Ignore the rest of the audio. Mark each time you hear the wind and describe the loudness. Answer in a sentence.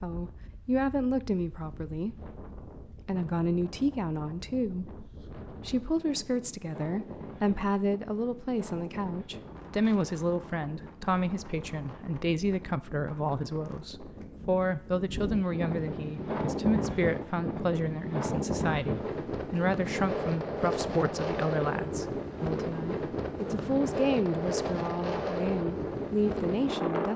You can hear the wind from 0.0 to 27.1 s, getting louder.